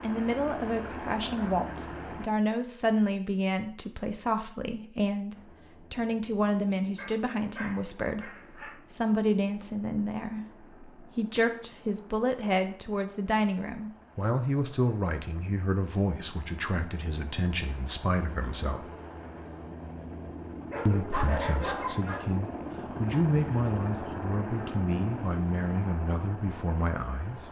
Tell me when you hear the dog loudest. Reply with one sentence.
The loudest moment of the dog is at 21 seconds.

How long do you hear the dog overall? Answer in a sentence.
The dog can be heard for 3 seconds in total.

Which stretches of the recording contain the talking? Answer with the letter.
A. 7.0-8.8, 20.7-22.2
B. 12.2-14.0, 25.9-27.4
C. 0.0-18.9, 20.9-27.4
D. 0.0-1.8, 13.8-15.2
C.